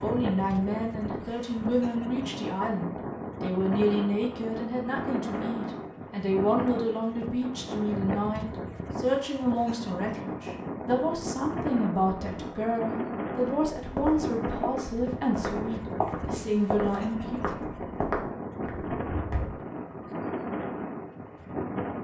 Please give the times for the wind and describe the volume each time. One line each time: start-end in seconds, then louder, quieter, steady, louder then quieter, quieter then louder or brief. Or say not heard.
0.0-21.9 steady.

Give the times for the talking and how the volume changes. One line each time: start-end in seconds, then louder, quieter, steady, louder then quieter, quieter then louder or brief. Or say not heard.
0.0-17.4 steady.